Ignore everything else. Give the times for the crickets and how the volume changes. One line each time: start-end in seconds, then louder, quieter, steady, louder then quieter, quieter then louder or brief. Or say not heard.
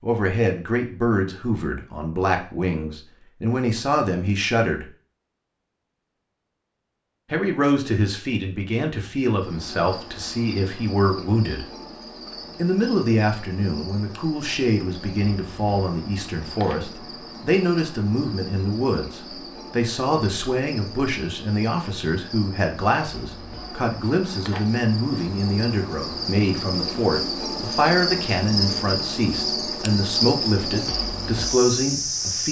9.3-32.4 louder.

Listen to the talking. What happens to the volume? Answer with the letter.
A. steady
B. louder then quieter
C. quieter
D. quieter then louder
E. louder
A.